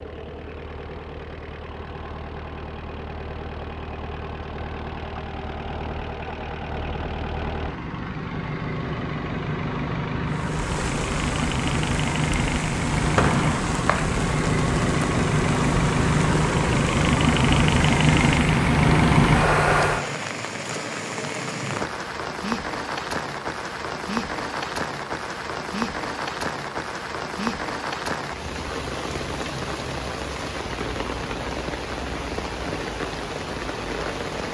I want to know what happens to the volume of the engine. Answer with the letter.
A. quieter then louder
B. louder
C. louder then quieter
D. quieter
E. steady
B.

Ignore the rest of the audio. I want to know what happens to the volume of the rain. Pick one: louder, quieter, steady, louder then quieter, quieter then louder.
steady.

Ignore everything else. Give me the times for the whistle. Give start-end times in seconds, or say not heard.
13.2-14.1.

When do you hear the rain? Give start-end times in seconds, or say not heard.
10.2-34.4.